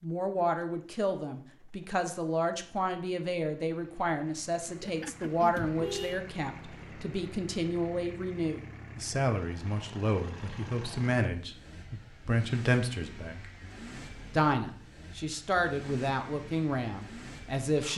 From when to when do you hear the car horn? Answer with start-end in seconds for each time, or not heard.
4.7-6.2.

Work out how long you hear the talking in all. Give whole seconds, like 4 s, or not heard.
17 s.